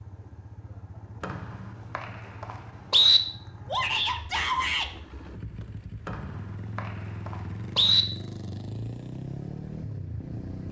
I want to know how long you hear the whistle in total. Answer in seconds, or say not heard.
4 s.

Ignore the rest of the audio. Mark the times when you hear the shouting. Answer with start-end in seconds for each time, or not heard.
3.6-4.9.